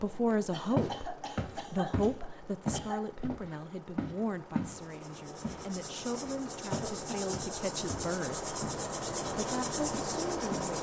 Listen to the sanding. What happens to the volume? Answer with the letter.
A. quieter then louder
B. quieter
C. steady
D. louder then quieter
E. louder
E.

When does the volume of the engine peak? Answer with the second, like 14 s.
10 s.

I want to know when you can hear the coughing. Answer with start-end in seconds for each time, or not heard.
0.5-3.1, 6.6-7.3.